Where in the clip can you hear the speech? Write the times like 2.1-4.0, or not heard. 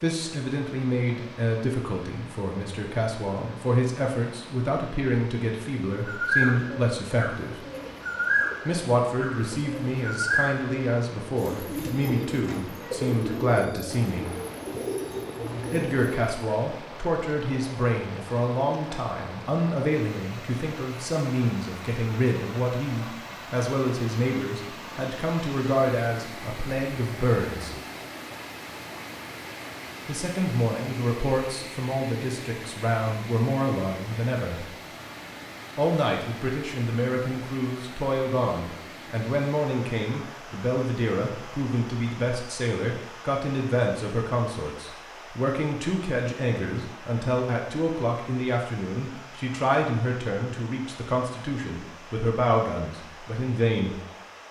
0.0-7.7, 8.7-14.3, 15.7-27.8, 30.1-34.8, 35.8-54.0.